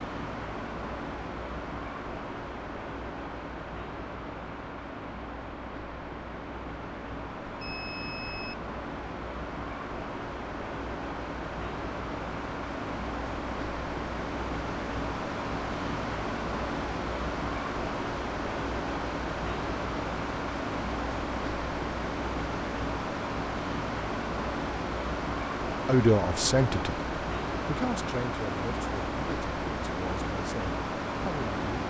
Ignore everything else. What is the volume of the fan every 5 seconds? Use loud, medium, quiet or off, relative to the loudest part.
medium, medium, loud, loud, loud, loud, loud.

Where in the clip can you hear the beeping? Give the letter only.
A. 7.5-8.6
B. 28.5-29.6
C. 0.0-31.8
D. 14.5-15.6
A.